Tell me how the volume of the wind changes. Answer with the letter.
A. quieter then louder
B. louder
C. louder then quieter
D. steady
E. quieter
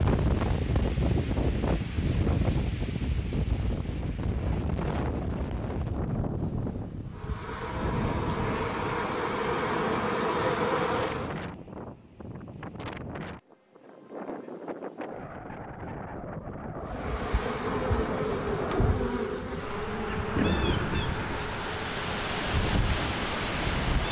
A.